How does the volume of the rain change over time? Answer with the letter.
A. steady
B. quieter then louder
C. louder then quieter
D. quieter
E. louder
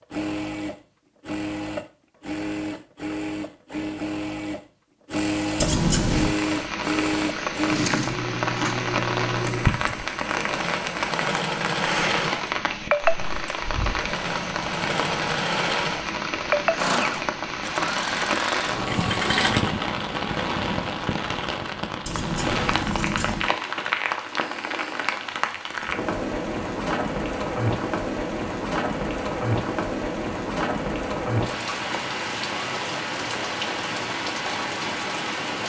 A.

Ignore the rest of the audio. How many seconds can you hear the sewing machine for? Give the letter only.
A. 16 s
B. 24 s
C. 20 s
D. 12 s
C.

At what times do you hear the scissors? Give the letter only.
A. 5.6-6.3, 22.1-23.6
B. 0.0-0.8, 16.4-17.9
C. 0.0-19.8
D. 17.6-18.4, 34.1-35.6
A.